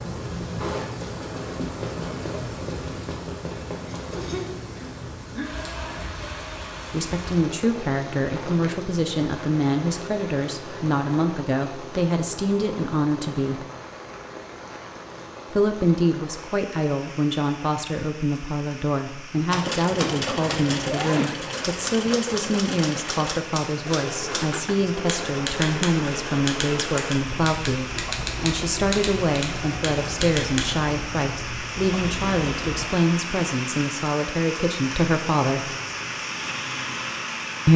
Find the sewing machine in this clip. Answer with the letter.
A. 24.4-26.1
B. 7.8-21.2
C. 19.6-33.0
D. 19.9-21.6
C.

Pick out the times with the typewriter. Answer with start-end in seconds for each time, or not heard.
19.5-30.8.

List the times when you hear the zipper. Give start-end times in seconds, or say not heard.
19.9-21.6.